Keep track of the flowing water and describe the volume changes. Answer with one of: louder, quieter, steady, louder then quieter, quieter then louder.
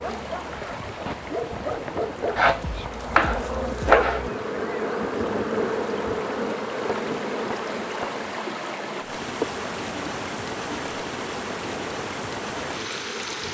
louder.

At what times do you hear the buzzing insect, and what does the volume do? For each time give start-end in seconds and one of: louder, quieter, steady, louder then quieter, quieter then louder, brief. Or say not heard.
0.0-13.4 louder then quieter.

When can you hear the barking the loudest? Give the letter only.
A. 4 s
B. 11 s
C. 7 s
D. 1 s
A.